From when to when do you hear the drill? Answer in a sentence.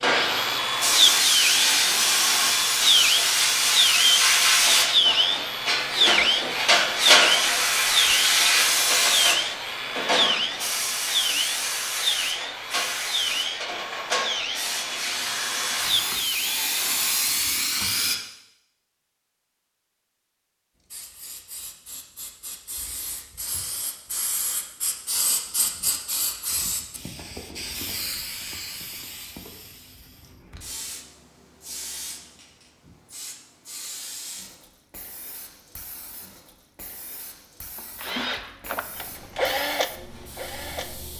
You can hear the drill from 0.0 to 17.4 s and from 37.8 to 41.1 s.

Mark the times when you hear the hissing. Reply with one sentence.
The hissing can be heard from 0.0 to 18.1 s and from 20.9 to 41.1 s.